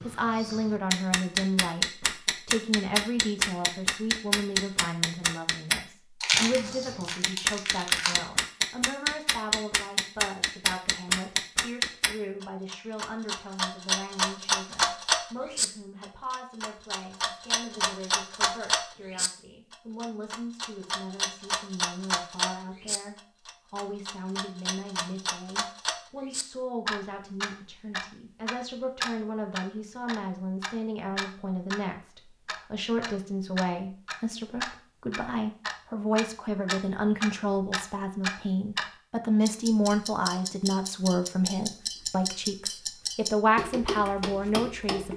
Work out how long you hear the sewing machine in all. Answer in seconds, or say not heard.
not heard.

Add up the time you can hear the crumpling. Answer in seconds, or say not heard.
2 s.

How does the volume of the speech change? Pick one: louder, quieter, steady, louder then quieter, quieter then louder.
quieter then louder.